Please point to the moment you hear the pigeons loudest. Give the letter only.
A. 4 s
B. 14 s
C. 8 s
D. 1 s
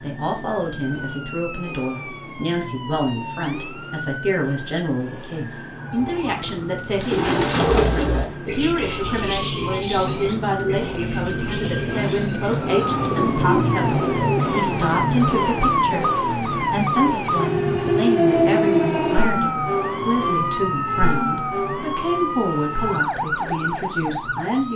C.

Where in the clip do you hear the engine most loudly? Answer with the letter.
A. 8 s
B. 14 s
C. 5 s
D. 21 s
B.